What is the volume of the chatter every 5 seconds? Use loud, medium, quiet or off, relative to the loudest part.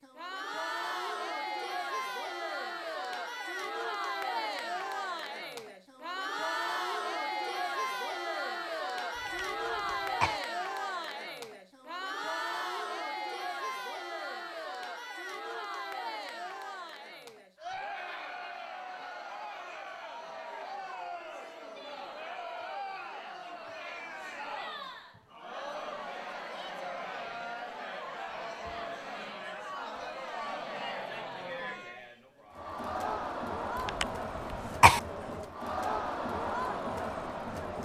loud, loud, loud, medium, medium, medium, loud, loud.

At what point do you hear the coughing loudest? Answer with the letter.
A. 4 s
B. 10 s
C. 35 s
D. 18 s
C.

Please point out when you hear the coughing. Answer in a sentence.
The coughing can be heard from 9.2 to 10.4 s and from 33.9 to 35.0 s.